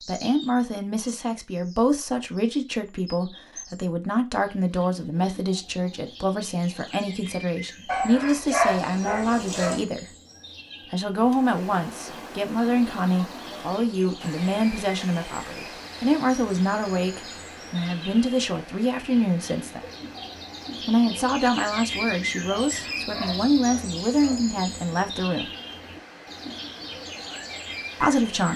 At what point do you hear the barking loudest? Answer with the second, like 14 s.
9 s.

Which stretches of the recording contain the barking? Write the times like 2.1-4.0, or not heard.
7.8-9.8, 22.6-24.4.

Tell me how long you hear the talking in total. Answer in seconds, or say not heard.
24 s.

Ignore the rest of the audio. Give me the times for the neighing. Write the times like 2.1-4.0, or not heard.
not heard.